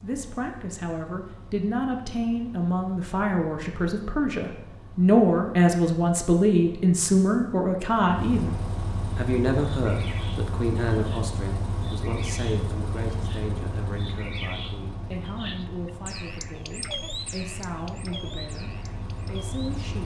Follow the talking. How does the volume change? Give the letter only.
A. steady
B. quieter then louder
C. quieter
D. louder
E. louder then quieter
E.